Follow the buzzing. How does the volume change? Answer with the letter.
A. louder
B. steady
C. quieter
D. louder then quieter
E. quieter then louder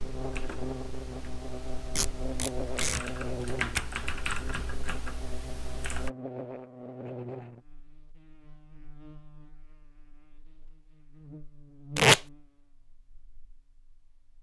E.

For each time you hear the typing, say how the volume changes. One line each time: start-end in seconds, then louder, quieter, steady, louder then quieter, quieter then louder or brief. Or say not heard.
0.0-6.1 louder then quieter.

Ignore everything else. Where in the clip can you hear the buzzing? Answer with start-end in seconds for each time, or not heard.
0.0-14.3.